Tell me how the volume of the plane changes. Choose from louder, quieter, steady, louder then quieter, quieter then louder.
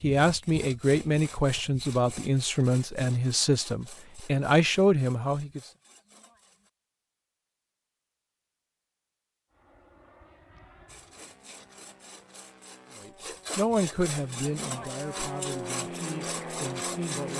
louder.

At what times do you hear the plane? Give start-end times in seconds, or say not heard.
9.5-17.3.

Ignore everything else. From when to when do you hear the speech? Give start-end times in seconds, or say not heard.
0.0-5.6, 12.9-17.3.